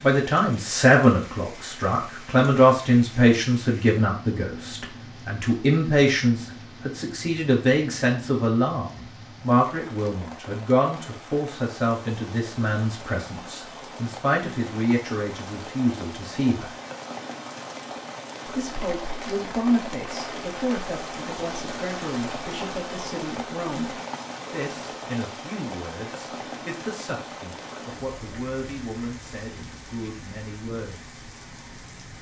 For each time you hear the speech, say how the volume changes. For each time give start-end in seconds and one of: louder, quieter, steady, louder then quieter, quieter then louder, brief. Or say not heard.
0.0-16.8 quieter
18.4-31.1 quieter.